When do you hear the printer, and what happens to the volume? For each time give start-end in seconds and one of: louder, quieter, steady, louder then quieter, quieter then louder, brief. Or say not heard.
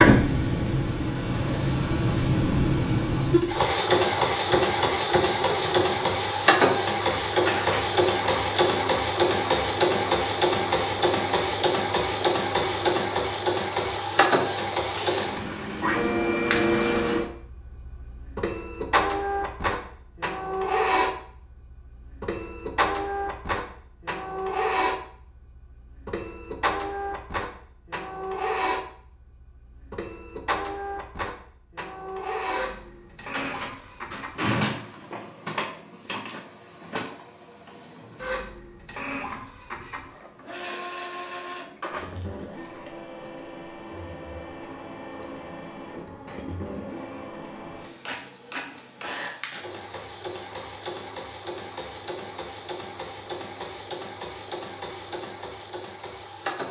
0.0-56.6 quieter.